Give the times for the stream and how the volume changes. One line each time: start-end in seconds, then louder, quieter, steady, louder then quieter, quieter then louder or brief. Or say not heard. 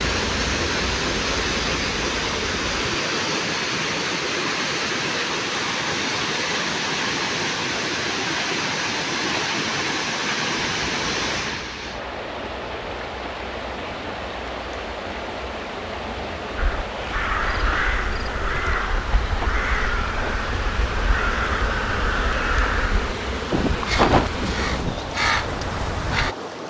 0.0-26.6 quieter.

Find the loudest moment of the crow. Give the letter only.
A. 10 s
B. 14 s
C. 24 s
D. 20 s
C.